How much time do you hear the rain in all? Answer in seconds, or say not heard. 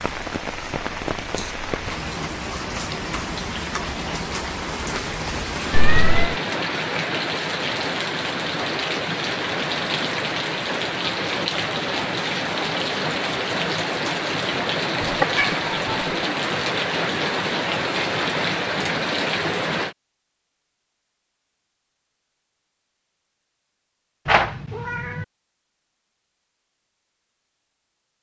20 s.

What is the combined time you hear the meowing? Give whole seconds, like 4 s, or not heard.
3 s.